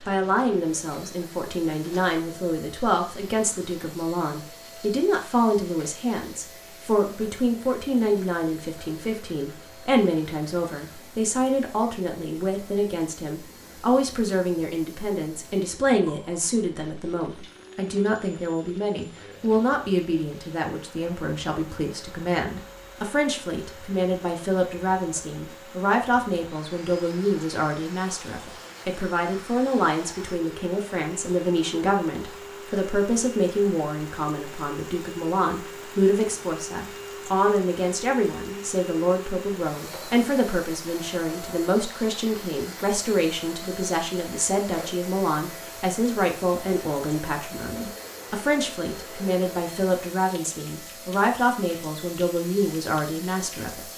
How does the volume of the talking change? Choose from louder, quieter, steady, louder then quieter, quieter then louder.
steady.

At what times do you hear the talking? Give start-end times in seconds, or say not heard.
0.0-53.9.